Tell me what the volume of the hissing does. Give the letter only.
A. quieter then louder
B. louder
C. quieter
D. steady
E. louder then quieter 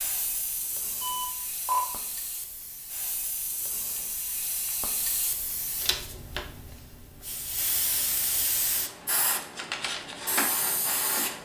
B.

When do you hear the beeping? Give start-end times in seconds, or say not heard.
1.0-1.9.